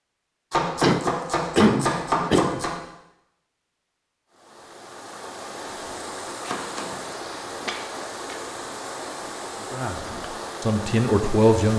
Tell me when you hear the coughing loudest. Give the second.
2 s.